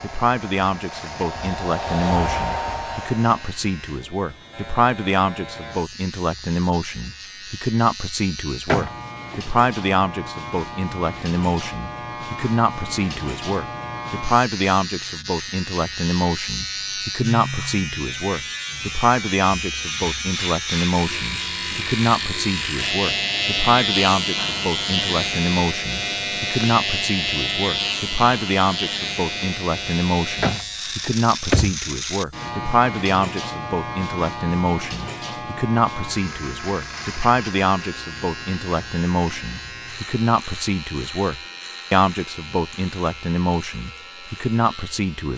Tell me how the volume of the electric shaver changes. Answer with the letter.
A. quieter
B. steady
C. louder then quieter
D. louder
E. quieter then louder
C.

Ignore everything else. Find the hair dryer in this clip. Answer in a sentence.
You can hear the hair dryer from 0.0 to 3.5 s.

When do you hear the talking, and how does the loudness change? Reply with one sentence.
You can hear the talking from 0.0 to 45.3 s, at a steady volume.